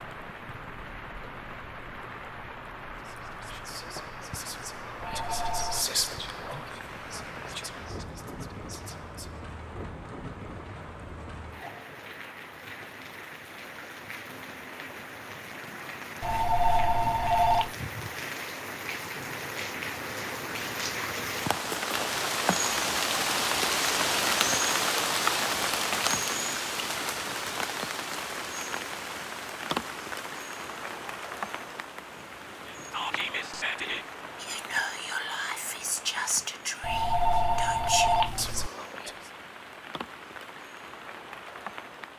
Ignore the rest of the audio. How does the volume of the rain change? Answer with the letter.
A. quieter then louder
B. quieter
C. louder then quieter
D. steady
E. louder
C.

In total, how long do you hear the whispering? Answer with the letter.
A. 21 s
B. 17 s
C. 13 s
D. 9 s
C.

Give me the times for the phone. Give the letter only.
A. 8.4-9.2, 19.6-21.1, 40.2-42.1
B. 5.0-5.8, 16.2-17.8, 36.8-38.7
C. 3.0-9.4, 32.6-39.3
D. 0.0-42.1
B.